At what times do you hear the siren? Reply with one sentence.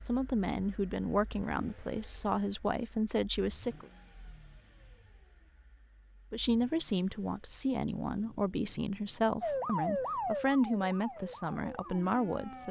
The siren can be heard from 9.4 to 12.6 s.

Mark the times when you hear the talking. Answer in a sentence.
You can hear the talking from 0.0 to 3.9 s and from 6.3 to 12.6 s.